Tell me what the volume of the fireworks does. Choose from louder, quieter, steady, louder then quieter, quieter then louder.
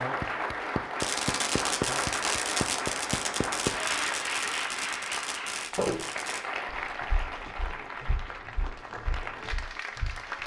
quieter.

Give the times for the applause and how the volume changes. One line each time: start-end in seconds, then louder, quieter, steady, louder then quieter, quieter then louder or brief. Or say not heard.
0.0-10.4 quieter.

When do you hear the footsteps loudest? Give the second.
6 s.